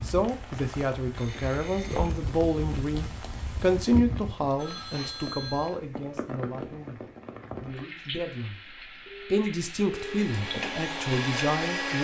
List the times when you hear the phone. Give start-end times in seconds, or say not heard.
1.1-2.2, 4.5-5.8, 9.1-10.2.